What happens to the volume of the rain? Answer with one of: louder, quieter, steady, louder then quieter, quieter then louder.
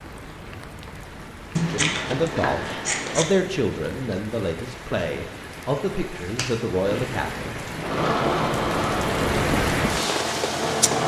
louder.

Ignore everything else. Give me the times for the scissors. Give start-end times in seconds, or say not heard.
1.6-3.2, 6.2-7.0.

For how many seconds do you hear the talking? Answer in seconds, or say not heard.
6 s.